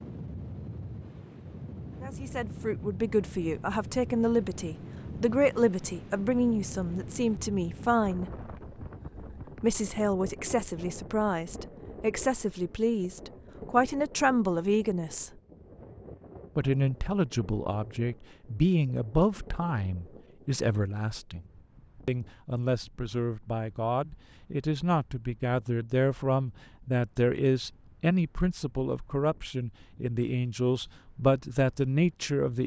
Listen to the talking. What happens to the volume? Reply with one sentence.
The volume of the talking stays about the same.